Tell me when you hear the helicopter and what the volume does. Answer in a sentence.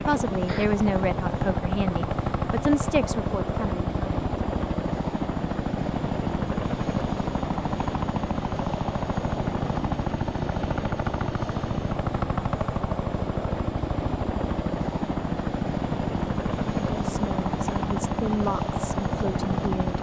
You can hear the helicopter from 0.0 to 19.9 s, at a steady volume.